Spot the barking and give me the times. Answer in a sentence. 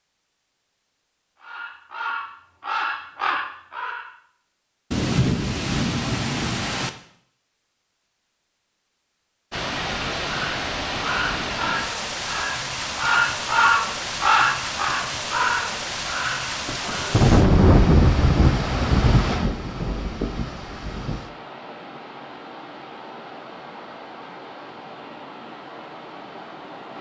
The barking can't be heard in this clip.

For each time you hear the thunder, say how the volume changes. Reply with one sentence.
You can hear the thunder briefly from 4.9 to 6.9 s; and from 16.6 to 21.2 s, getting quieter.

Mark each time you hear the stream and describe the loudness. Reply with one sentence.
You can hear the stream from 9.5 to 26.9 s, getting quieter.